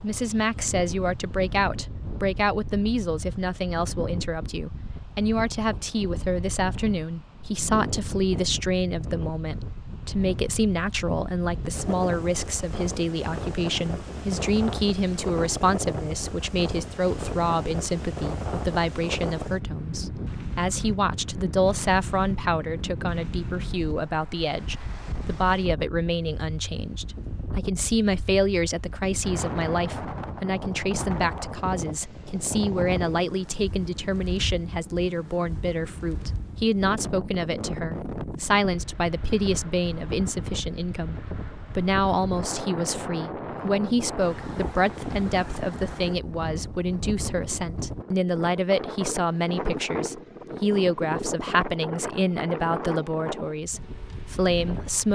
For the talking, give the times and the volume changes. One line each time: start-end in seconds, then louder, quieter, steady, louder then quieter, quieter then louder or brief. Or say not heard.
0.0-55.1 steady.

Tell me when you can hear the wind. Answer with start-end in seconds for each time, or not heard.
0.0-55.1.